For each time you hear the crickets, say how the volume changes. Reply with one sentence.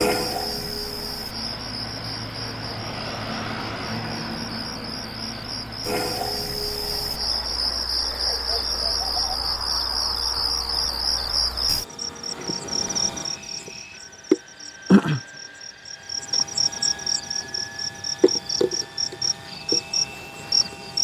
You can hear the crickets from 0.0 to 21.0 s, getting louder.